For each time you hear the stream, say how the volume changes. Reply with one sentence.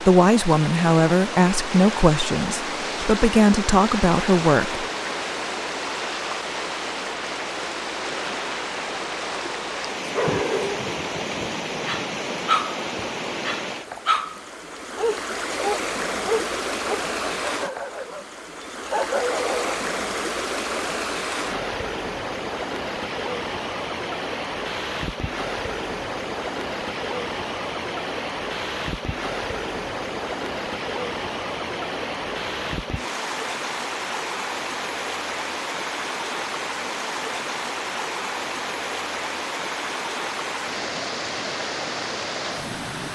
You can hear the stream from 0.0 to 43.1 s, at a steady volume.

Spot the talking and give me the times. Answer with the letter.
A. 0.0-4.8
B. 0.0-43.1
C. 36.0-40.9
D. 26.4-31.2
A.